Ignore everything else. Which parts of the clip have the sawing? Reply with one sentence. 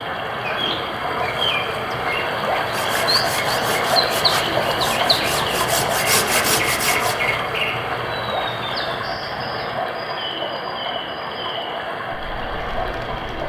You can hear the sawing from 2.7 to 7.2 s.